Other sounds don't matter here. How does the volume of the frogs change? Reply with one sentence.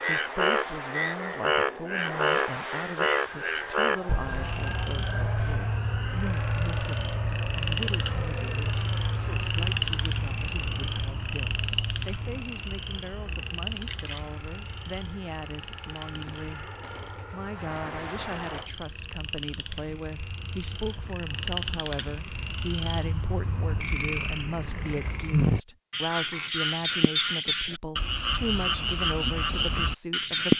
The loudness of the frogs goes down, then up.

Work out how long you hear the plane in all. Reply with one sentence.
The plane can be heard for 19 seconds in total.